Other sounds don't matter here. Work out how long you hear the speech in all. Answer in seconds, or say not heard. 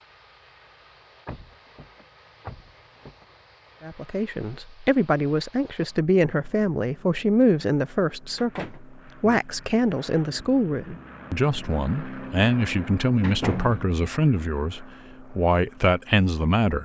13 s.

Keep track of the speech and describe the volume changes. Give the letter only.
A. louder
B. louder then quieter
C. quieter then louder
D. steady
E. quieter
D.